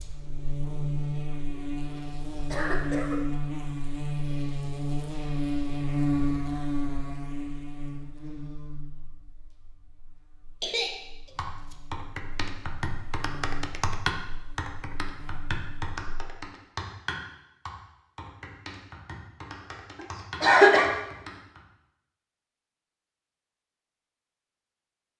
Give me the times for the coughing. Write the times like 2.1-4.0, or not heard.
2.5-3.2, 10.6-11.8, 20.4-20.9.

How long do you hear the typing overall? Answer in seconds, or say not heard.
10 s.